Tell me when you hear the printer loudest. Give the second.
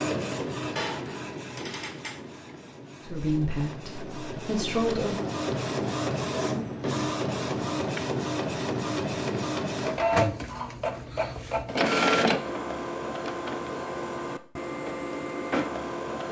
12 s.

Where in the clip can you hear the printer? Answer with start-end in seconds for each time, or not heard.
0.0-16.2.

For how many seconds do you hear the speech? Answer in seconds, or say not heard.
2 s.